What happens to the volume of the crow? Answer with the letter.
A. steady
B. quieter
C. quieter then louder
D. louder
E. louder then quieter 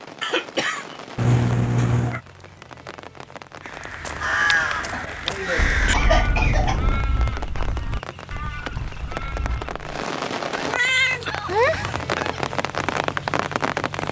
B.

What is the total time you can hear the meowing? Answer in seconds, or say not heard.
4 s.